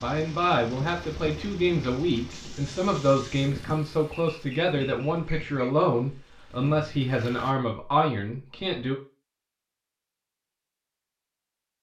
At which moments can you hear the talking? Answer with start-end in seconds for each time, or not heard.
0.0-8.9.